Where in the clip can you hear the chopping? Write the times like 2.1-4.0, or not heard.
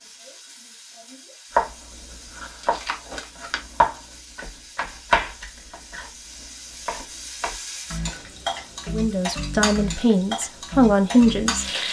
1.6-2.8, 3.4-8.3.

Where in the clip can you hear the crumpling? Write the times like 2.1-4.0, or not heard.
2.6-3.6.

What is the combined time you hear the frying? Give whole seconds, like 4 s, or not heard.
12 s.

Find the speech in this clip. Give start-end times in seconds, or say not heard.
8.8-11.8.